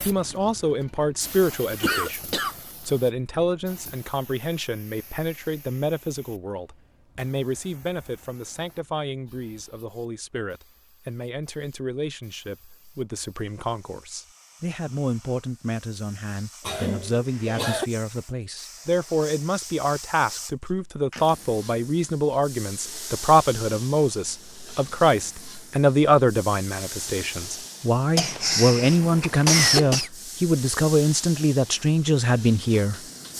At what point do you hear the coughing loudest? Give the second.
30 s.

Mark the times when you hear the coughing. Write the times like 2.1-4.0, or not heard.
1.8-2.5, 16.6-17.9, 28.1-30.1.